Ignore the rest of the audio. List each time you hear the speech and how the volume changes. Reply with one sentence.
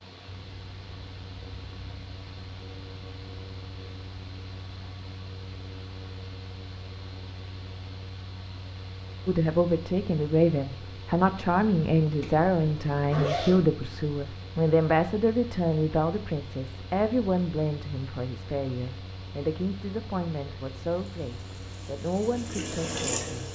You can hear the speech from 9.2 to 23.5 s, getting quieter.